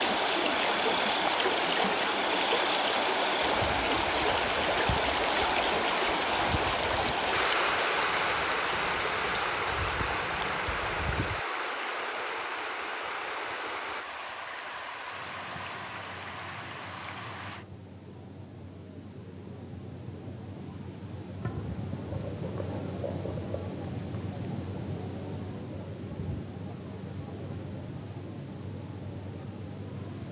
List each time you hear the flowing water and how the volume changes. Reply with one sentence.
The flowing water can be heard from 0.0 to 17.6 s, getting quieter.